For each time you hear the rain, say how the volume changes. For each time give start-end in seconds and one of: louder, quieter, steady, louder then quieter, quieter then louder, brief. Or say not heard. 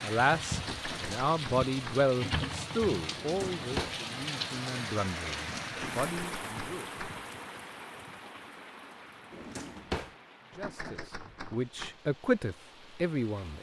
0.0-13.5 quieter.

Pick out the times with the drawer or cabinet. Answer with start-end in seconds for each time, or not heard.
3.1-4.0, 9.3-10.2.